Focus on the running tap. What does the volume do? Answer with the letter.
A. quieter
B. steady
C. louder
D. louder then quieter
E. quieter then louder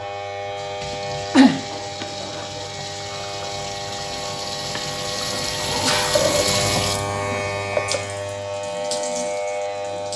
D.